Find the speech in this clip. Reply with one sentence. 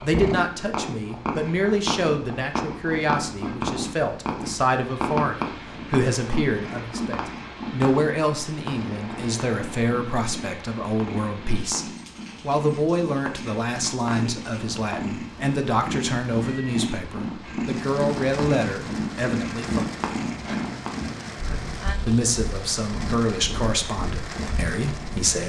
The speech can be heard from 0.0 to 19.9 s and from 22.0 to 25.4 s.